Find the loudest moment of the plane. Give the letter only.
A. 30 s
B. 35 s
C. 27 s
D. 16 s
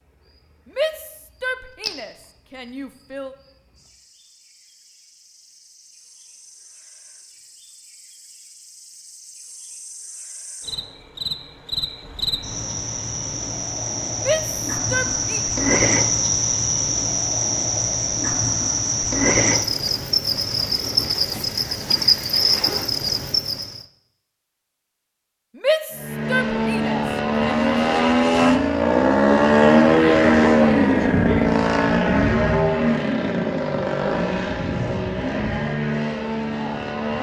A.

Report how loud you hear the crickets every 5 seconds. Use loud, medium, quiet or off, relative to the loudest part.
quiet, quiet, medium, loud, loud, off, off, off.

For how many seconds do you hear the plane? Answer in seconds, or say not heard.
11 s.